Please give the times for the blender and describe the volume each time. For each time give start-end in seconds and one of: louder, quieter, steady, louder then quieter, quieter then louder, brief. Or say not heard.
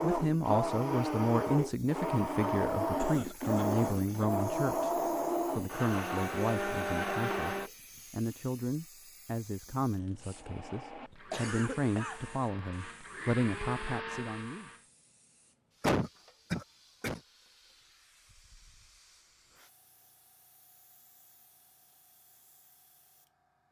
0.0-7.7 steady
10.2-14.8 louder.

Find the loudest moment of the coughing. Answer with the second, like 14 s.
16 s.